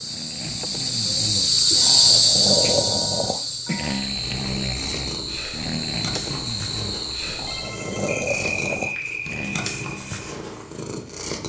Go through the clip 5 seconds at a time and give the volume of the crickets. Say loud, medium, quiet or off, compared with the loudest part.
loud, medium, off.